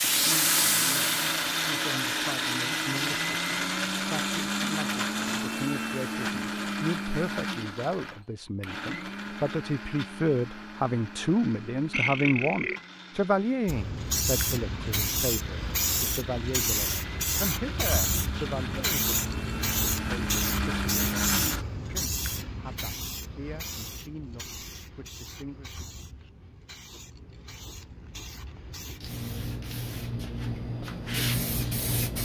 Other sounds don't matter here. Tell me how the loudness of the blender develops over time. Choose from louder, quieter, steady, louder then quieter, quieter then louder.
quieter then louder.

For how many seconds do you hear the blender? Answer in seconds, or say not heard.
22 s.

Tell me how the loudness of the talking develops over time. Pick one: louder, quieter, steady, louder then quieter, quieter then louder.
louder then quieter.